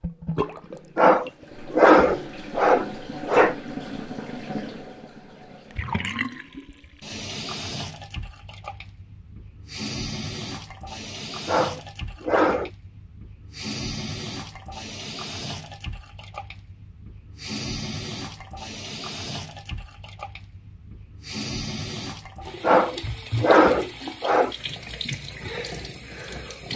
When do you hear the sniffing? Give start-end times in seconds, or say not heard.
0.9-3.5, 11.4-12.7, 22.6-24.6.